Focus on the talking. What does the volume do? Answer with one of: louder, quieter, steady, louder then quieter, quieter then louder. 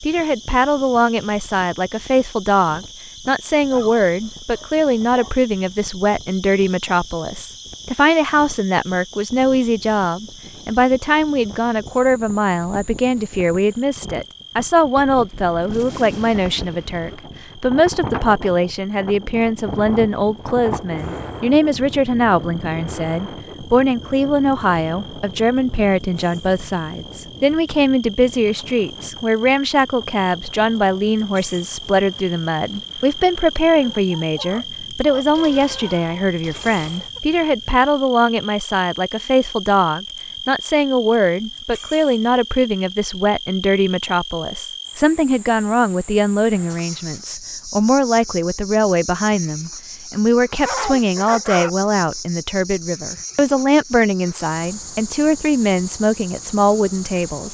steady.